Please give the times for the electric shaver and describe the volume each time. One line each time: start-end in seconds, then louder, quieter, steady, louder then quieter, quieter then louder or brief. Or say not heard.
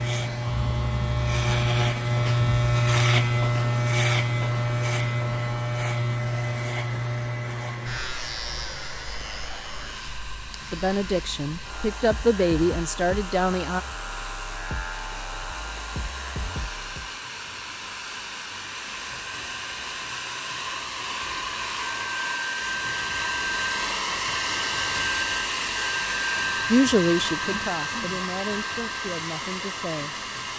0.0-17.1 quieter.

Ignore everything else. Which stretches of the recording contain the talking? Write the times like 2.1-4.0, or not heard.
10.7-13.8, 26.7-30.5.